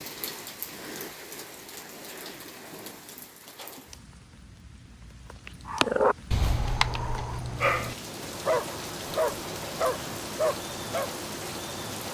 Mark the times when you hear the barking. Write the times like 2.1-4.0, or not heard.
5.7-11.1.